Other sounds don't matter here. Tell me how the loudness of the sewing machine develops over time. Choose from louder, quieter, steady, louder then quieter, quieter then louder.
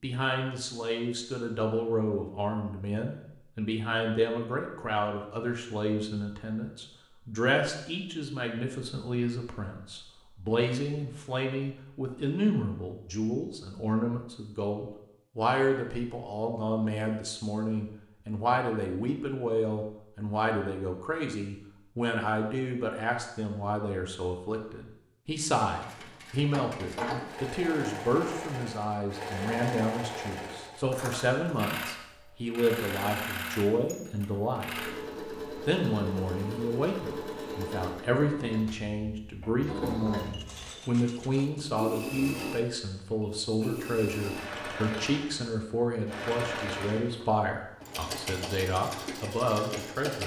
steady.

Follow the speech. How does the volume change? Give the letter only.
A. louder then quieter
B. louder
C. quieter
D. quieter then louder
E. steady
E.